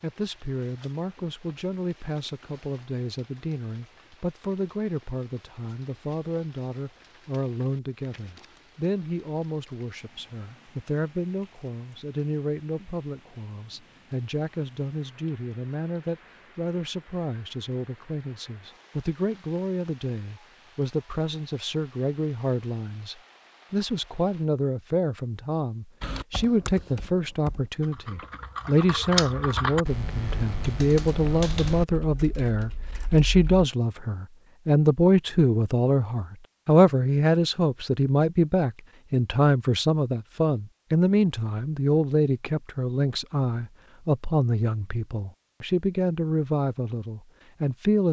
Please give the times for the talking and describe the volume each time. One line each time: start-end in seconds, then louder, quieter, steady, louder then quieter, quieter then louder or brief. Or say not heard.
0.0-48.0 louder.